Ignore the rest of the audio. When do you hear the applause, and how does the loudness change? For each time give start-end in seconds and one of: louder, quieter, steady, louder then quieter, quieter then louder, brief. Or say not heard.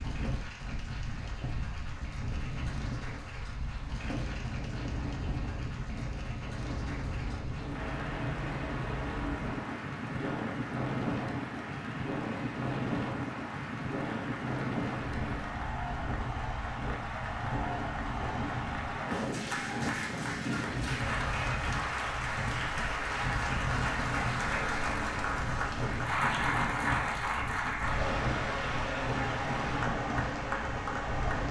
0.0-31.4 louder.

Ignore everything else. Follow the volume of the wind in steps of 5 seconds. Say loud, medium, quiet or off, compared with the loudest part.
medium, loud, loud, loud, loud, loud, loud.